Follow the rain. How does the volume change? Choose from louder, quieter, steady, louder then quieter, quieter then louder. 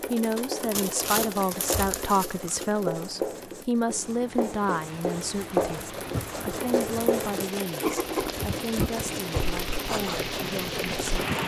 louder.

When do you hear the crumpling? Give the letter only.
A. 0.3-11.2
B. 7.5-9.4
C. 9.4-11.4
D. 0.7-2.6
D.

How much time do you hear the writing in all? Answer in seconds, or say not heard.
11 s.